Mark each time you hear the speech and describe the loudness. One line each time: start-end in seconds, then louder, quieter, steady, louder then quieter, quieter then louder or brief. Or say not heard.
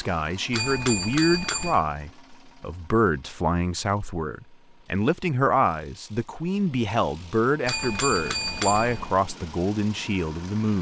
0.0-10.7 steady.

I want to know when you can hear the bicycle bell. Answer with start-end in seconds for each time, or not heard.
0.5-1.8, 7.7-9.2.